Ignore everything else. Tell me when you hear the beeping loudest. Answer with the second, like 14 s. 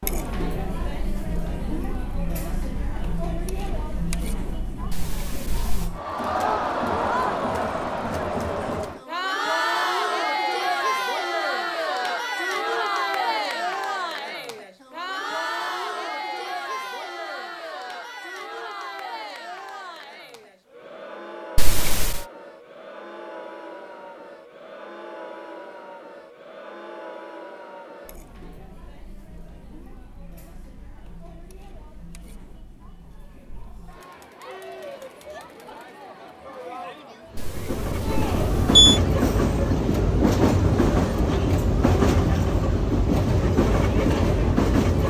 39 s.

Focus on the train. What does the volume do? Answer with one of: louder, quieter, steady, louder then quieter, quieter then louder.
steady.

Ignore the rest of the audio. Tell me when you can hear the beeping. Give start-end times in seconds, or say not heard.
4.9-5.9, 21.6-22.2, 37.4-39.0.